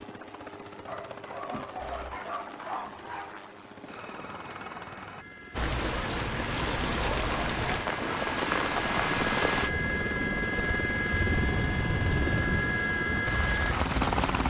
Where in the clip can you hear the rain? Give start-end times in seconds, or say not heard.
5.5-14.4.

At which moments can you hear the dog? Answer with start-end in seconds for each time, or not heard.
0.8-3.5.